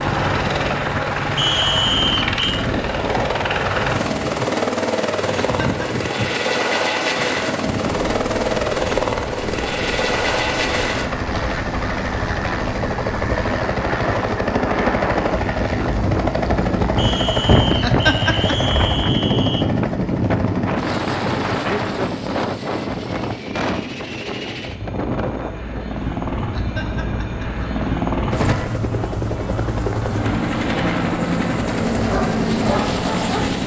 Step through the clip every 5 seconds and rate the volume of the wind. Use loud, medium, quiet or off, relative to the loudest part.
medium, medium, medium, loud, loud, medium, medium.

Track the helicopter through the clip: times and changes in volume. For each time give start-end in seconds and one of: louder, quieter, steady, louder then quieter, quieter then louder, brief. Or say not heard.
0.0-33.6 quieter then louder.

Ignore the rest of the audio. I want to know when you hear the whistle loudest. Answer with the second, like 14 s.
2 s.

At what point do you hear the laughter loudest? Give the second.
18 s.